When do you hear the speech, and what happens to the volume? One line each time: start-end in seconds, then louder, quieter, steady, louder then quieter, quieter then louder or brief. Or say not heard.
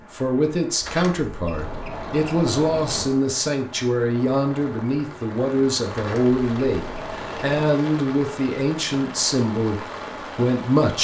0.0-10.9 steady.